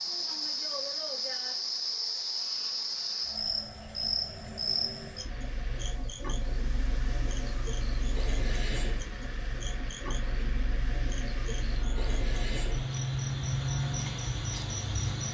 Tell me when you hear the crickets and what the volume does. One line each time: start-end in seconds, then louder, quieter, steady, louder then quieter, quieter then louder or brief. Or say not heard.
0.0-15.2 quieter then louder.